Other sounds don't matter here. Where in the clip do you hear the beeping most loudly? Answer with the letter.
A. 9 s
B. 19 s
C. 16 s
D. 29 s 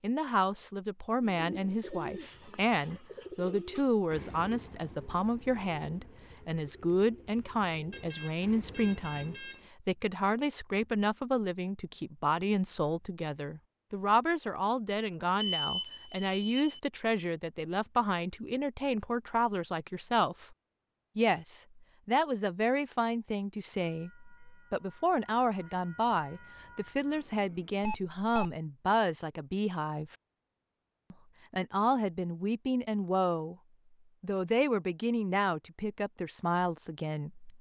C.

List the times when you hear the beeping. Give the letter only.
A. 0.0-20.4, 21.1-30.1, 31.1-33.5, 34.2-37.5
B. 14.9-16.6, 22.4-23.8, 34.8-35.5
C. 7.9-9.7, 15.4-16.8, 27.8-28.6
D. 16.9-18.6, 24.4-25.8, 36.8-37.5
C.